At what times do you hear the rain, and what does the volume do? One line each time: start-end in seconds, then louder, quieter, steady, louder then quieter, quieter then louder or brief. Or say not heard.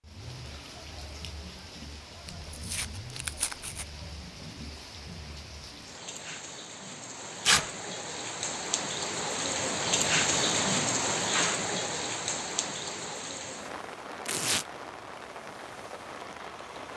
0.0-16.9 louder then quieter.